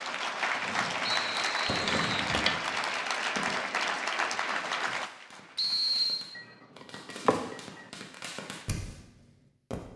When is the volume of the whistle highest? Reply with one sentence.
The loudest moment of the whistle is at 6 seconds.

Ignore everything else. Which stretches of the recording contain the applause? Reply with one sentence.
The applause can be heard from 0.0 to 6.1 s.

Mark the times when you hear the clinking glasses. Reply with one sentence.
The clinking glasses can be heard from 1.9 to 2.6 s and from 6.3 to 7.8 s.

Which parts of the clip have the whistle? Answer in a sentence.
You can hear the whistle from 1.1 to 2.3 s and from 5.5 to 6.2 s.